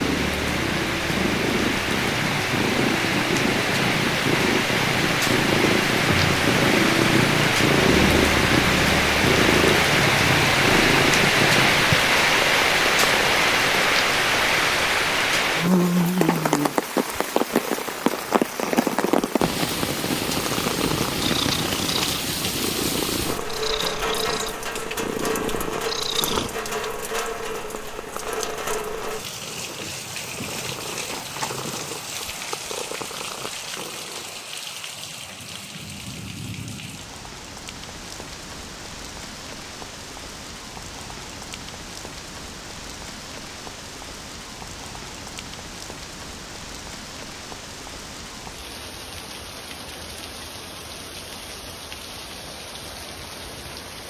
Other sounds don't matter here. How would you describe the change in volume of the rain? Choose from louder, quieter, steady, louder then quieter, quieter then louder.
quieter.